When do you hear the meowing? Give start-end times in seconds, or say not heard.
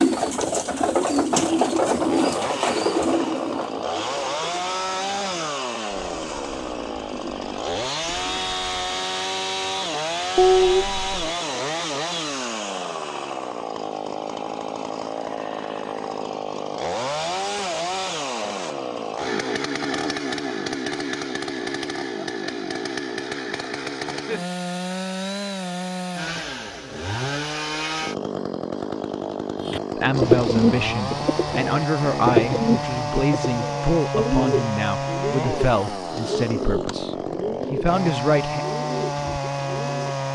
10.3-11.2.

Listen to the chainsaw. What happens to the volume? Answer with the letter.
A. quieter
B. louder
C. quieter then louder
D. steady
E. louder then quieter
D.